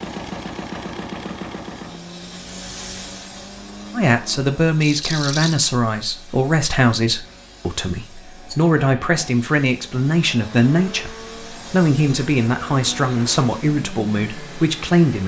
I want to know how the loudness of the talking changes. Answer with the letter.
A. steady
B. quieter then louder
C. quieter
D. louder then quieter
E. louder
A.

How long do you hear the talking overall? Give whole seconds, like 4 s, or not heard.
11 s.